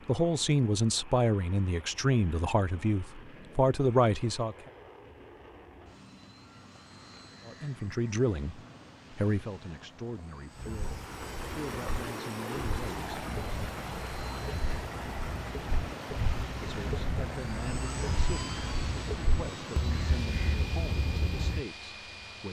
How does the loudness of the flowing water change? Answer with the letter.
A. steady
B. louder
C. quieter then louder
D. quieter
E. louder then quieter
D.